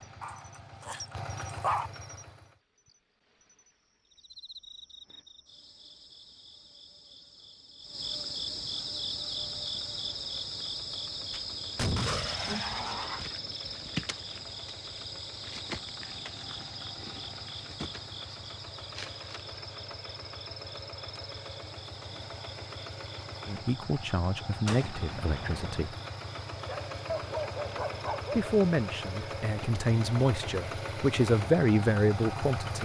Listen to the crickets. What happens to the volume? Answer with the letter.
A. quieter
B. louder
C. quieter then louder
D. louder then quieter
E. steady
D.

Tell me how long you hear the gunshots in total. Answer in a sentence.
The gunshots can be heard for 3 seconds in total.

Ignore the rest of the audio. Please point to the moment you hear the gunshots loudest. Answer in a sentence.
The volume of the gunshots peaks at 12 seconds.